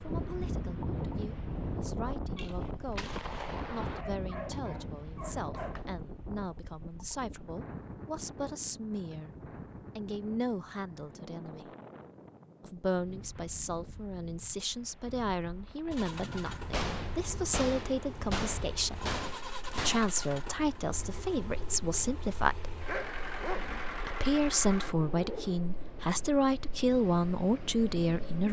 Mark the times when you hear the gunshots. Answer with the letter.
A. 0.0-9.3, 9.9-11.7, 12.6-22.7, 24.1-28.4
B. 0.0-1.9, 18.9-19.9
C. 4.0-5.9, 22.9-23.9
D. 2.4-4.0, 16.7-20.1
D.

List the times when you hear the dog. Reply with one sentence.
You can hear the dog from 4.0 to 5.9 s and from 22.9 to 23.9 s.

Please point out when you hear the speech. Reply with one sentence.
The speech can be heard from 0.0 to 9.3 s, from 9.9 to 11.7 s, from 12.6 to 22.7 s and from 24.1 to 28.4 s.